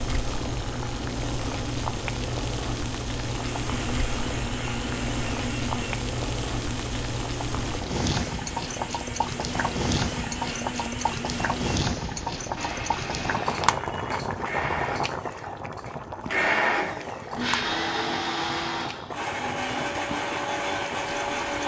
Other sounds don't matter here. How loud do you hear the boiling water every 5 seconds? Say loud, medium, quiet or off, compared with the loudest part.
loud, loud, loud, medium, medium.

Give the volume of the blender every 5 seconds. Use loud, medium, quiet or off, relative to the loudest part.
medium, medium, medium, loud, loud.